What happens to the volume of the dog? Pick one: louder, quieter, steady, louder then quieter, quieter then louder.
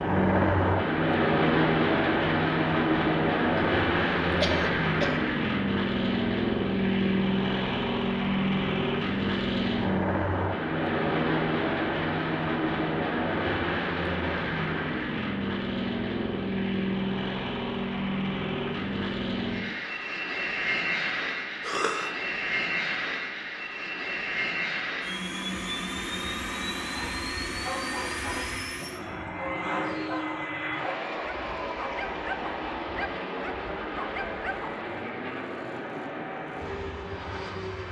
steady.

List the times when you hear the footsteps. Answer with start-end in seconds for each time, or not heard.
not heard.